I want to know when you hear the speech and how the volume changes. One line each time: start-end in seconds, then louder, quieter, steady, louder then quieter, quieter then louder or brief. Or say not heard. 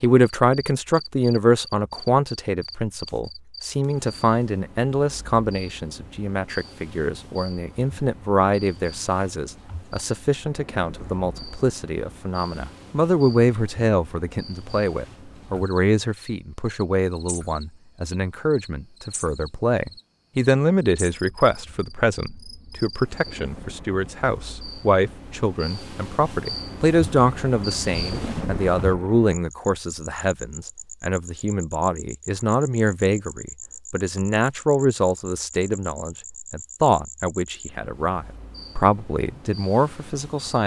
0.0-40.6 steady.